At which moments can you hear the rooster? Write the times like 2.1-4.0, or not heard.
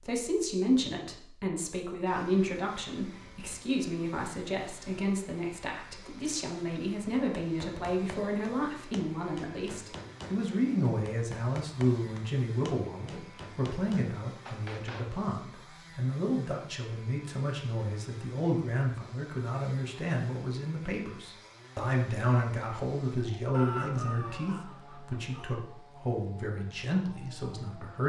23.5-25.6.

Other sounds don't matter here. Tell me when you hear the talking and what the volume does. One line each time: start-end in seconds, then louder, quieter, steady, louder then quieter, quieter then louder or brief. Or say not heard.
0.1-28.0 steady.